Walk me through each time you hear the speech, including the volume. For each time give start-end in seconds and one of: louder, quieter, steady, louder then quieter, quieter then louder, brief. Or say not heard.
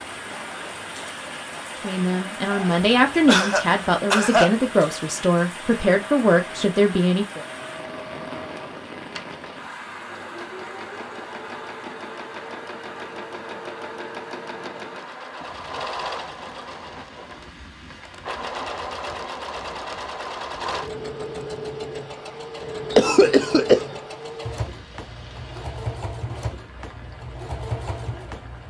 1.8-7.5 steady.